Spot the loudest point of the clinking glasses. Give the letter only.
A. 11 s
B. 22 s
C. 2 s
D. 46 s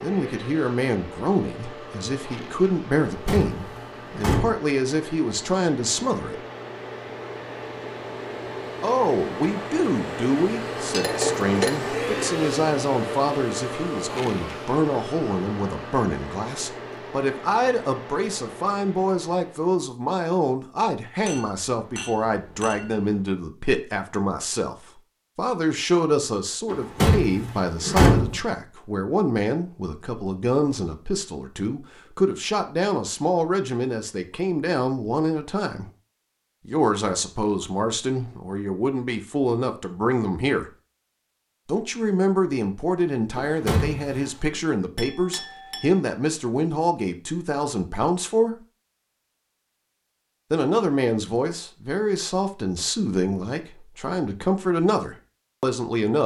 A.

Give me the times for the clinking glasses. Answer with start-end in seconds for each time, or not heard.
10.8-11.8, 21.2-23.1, 45.0-46.0.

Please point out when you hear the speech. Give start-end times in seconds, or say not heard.
0.0-6.4, 8.8-35.9, 36.6-40.7, 41.6-48.5, 50.5-56.2.